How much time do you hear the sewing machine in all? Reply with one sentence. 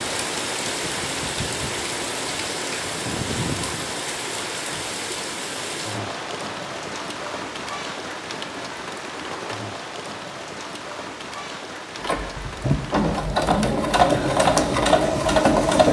The sewing machine can be heard for 4 seconds in total.